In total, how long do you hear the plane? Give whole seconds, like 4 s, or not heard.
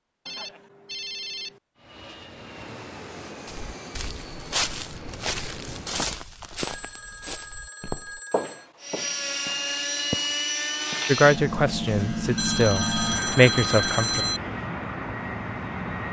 12 s.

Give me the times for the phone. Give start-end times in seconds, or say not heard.
0.2-1.6, 6.5-8.7, 12.3-14.4.